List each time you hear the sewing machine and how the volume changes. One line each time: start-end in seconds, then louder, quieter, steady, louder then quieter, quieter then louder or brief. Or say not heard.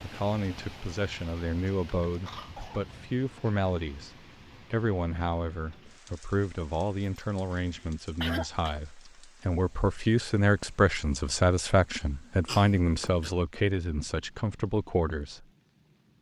not heard.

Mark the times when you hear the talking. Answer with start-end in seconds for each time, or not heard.
0.0-15.4.